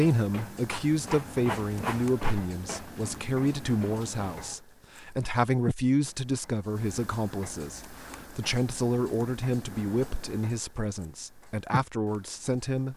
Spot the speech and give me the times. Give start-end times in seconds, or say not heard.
0.0-12.9.